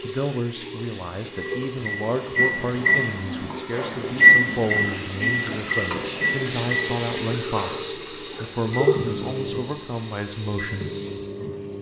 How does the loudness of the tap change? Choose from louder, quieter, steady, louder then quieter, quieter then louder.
louder then quieter.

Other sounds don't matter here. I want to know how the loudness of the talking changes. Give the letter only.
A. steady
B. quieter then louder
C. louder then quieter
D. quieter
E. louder
A.